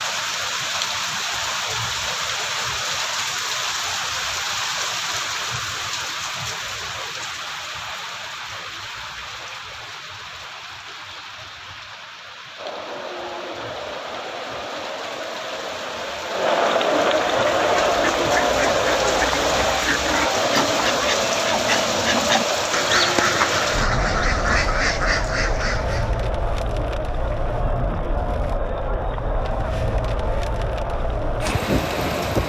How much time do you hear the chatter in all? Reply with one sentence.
The chatter can be heard for 20 seconds in total.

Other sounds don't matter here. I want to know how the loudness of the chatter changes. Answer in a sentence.
The volume of the chatter goes up, then down.